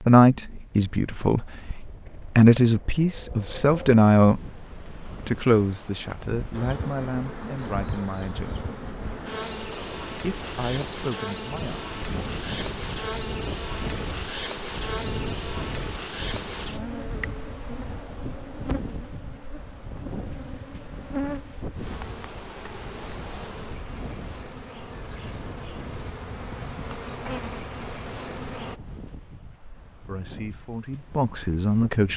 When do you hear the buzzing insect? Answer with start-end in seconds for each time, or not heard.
6.5-28.8.